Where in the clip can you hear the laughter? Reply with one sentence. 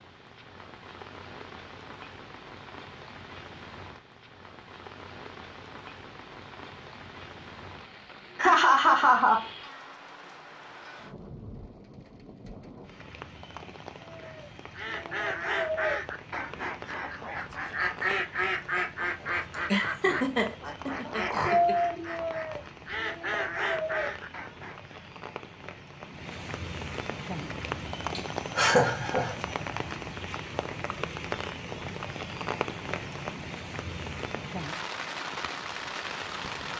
You can hear the laughter from 8.3 to 9.4 s, from 19.5 to 21.8 s and from 28.1 to 29.4 s.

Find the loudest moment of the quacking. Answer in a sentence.
The loudest moment of the quacking is at 22 seconds.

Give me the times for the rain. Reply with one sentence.
The rain can be heard from 0.0 to 36.7 s.